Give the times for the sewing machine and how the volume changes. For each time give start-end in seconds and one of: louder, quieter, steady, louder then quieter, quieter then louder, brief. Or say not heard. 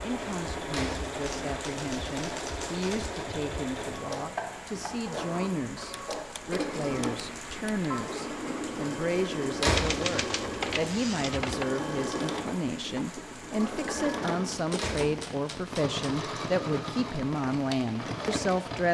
0.0-18.8 steady.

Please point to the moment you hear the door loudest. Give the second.
10 s.